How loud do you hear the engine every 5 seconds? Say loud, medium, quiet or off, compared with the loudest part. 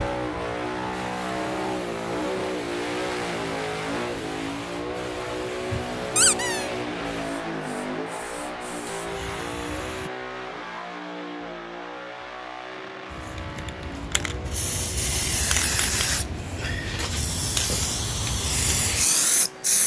loud, loud, medium, quiet.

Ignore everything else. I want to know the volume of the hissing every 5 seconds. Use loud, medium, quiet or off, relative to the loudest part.
quiet, quiet, medium, loud.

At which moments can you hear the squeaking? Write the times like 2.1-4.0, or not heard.
6.2-6.7.